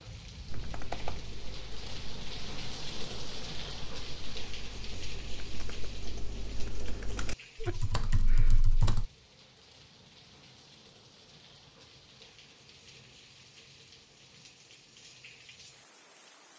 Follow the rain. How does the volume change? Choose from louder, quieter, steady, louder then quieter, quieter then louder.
quieter.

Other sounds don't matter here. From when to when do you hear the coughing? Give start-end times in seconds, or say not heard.
7.4-8.6.